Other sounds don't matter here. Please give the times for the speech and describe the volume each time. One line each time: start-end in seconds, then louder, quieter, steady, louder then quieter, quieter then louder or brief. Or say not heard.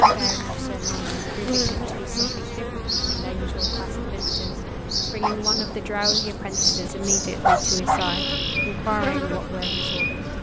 0.0-10.2 louder.